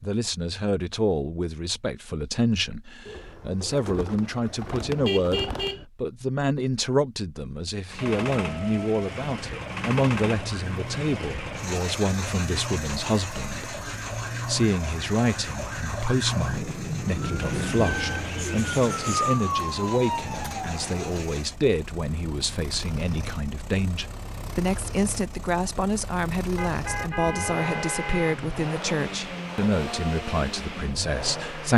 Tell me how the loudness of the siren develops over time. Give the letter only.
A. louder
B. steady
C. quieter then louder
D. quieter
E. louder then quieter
A.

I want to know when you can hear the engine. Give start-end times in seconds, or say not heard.
7.8-31.7.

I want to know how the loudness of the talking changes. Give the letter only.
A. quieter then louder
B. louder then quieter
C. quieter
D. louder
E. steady
E.